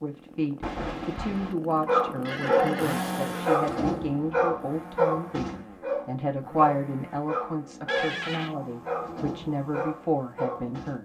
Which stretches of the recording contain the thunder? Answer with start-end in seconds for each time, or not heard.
0.6-1.6.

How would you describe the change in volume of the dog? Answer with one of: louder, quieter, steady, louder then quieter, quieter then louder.
quieter.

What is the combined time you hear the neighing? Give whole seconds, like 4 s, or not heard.
2 s.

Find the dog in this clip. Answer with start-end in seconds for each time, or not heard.
1.9-10.9.